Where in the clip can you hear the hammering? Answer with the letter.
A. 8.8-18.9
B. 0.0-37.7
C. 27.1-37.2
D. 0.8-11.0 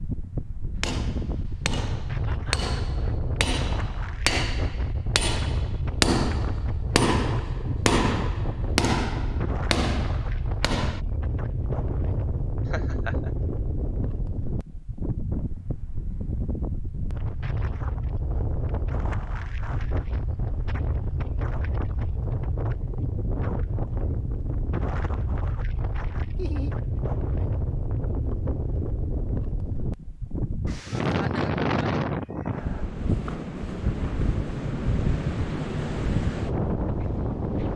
D.